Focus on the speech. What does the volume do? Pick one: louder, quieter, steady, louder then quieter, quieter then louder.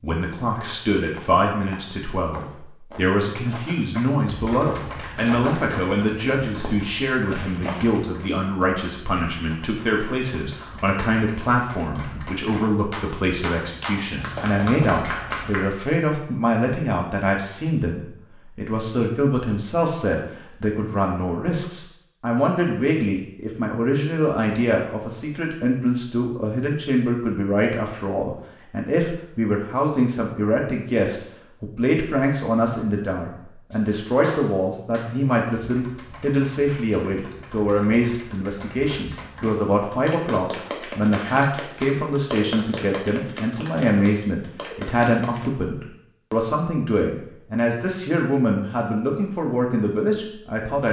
steady.